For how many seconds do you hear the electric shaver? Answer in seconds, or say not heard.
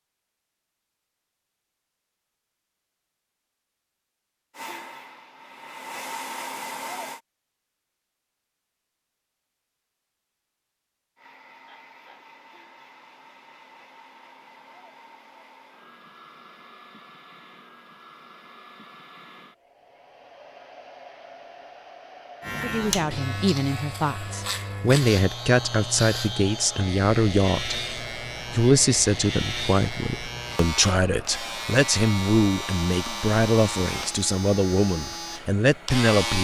14 s.